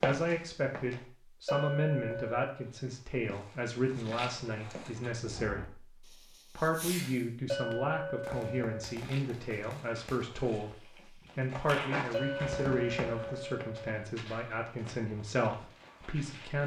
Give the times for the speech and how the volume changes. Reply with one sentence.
You can hear the speech from 0.0 to 16.6 s, at a steady volume.